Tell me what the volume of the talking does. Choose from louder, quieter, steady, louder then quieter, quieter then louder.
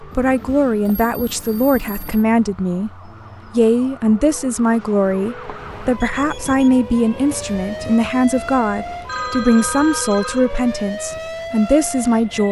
steady.